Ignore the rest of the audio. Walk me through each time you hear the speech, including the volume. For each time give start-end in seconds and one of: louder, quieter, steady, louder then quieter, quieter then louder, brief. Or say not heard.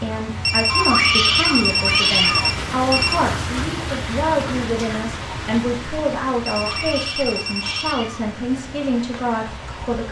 0.0-10.0 steady.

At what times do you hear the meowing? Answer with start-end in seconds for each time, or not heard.
0.7-2.5, 6.7-8.3.